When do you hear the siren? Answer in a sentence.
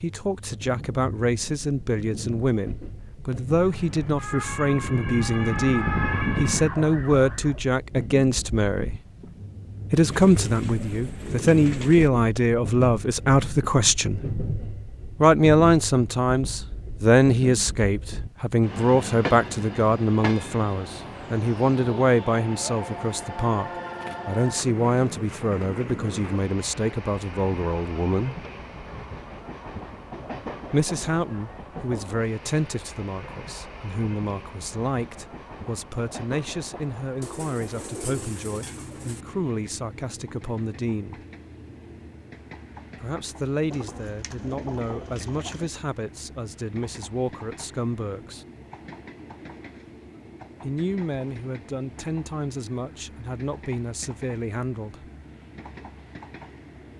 The siren can be heard from 3.5 to 7.7 s.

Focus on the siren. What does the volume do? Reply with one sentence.
The volume of the siren goes up, then down.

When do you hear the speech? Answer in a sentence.
The speech can be heard from 0.0 to 8.9 s, from 9.9 to 14.2 s, from 15.2 to 28.4 s, from 30.7 to 41.2 s, from 43.0 to 48.5 s and from 50.6 to 55.0 s.